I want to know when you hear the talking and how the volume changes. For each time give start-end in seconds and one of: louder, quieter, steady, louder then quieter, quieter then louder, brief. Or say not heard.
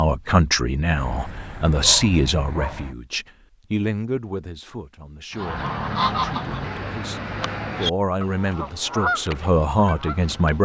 0.0-10.6 quieter then louder.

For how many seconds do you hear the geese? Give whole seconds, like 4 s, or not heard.
5 s.